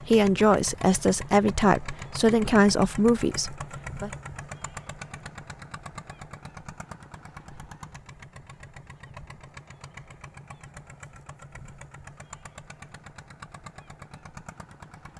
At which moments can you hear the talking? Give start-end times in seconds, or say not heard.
0.1-4.1.